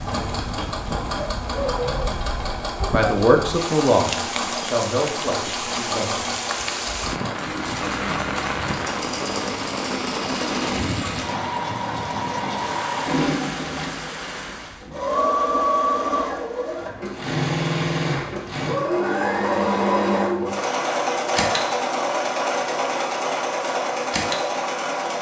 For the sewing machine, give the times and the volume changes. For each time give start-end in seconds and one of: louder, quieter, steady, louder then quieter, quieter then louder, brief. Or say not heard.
0.0-25.1 louder.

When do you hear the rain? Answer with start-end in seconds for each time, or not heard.
0.0-14.9.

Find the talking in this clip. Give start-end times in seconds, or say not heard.
2.9-6.3.